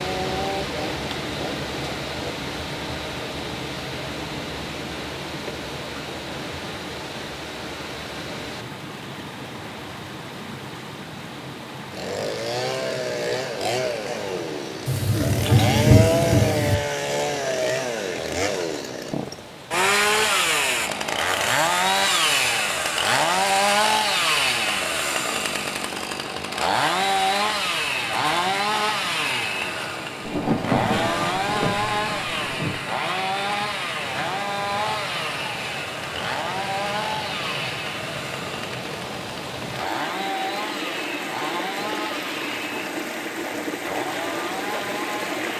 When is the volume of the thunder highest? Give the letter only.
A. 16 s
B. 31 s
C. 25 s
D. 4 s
A.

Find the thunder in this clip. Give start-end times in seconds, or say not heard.
14.8-16.8, 30.2-32.8.